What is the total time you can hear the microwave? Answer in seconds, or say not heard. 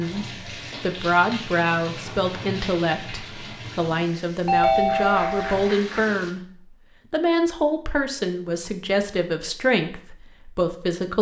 not heard.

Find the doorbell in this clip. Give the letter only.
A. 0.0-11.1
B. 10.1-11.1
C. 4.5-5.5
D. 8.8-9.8
C.